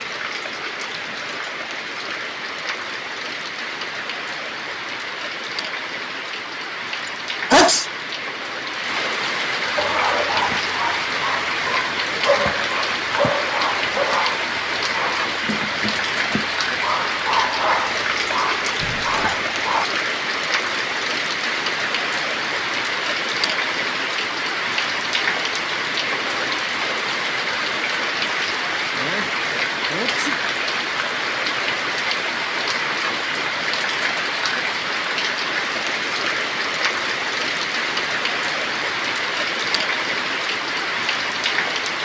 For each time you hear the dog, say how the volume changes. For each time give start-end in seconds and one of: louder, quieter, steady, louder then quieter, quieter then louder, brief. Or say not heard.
9.8-19.9 steady.